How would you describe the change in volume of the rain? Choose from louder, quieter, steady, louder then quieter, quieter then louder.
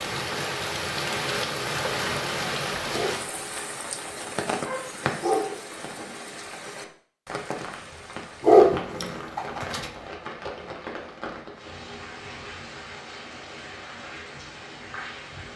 quieter.